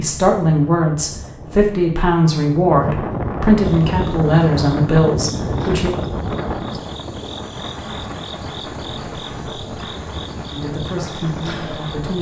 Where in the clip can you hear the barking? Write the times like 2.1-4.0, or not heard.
not heard.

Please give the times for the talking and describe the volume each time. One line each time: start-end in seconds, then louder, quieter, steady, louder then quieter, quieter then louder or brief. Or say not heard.
0.0-6.0 steady
10.5-12.1 brief.